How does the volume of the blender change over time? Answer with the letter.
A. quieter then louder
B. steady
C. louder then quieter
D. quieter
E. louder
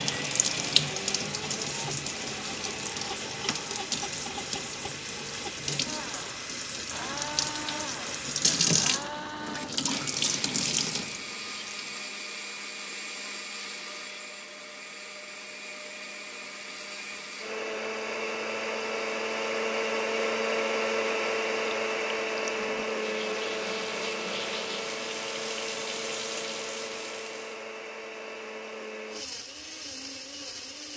C.